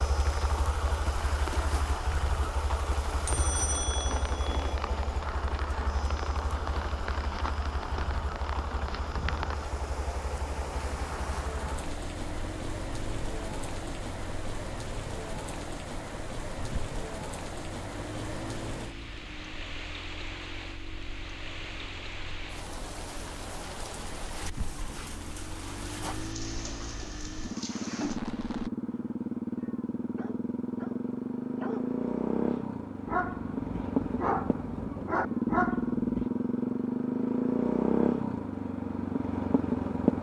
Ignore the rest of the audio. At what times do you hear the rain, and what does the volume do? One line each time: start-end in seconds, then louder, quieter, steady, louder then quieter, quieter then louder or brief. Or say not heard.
0.0-28.7 steady.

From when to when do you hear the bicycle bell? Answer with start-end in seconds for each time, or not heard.
3.2-4.8.